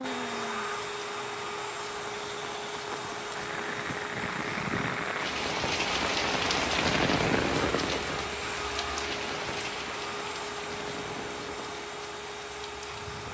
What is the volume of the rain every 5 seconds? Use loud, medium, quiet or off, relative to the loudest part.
medium, loud, quiet.